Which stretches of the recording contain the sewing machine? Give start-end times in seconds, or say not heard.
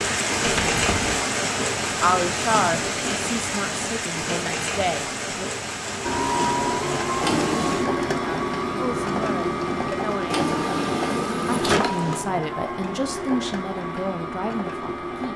6.0-15.3.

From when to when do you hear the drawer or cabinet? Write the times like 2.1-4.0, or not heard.
0.5-1.2, 7.2-7.9, 10.3-12.2.